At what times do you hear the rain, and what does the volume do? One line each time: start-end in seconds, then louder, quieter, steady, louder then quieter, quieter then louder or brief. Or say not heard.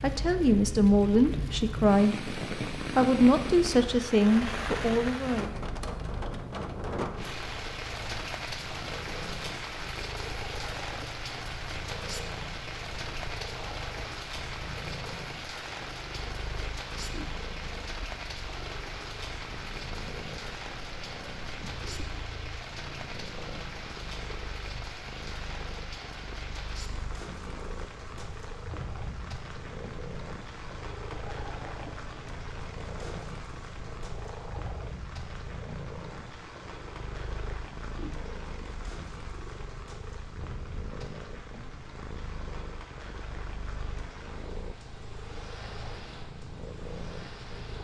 0.0-47.7 quieter.